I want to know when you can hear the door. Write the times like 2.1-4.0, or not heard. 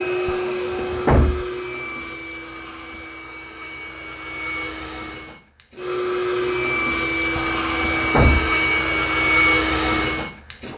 0.2-1.4, 7.3-8.5.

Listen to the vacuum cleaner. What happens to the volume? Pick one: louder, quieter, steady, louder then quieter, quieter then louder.
quieter then louder.